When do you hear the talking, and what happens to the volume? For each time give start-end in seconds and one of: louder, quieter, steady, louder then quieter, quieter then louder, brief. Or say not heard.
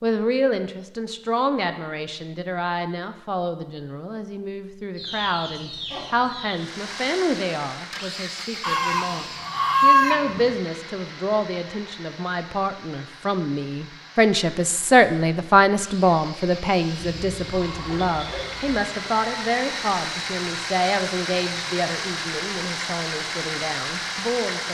0.0-24.6 louder then quieter.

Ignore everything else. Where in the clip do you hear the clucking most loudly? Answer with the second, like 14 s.
10 s.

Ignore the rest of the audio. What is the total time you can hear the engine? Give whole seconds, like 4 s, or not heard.
18 s.